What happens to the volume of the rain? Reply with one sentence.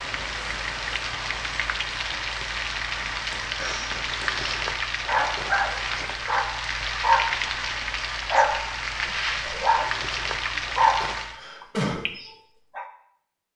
The volume of the rain stays about the same.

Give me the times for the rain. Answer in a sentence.
You can hear the rain from 0.0 to 11.4 s.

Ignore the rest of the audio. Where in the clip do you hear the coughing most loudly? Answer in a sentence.
The volume of the coughing peaks at 12 seconds.